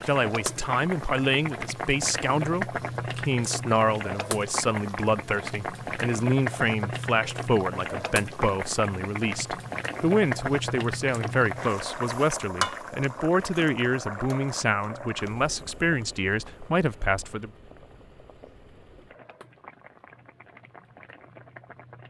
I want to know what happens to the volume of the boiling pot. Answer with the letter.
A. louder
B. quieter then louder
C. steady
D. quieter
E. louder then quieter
D.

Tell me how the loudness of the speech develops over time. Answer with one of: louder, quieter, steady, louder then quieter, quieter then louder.
steady.